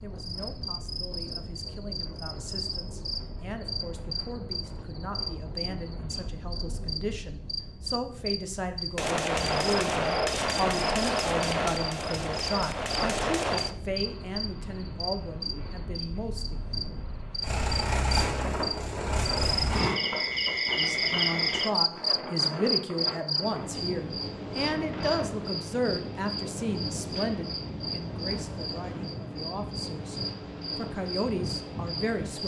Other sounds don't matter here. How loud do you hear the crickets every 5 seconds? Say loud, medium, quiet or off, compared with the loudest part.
medium, medium, medium, medium, loud, medium, medium.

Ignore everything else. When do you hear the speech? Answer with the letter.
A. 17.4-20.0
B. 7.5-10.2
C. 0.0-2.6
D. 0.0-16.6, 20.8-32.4
D.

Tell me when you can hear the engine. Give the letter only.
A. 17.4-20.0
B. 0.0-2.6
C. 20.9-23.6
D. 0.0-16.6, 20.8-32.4
A.